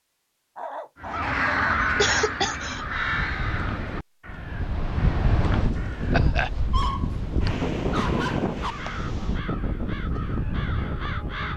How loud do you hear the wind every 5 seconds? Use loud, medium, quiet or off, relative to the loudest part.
medium, loud, loud.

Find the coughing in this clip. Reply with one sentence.
The coughing can be heard from 1.9 to 2.9 s and from 6.1 to 6.5 s.